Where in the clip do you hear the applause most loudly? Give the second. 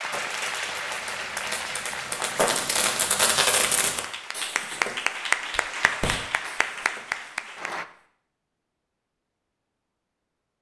5 s.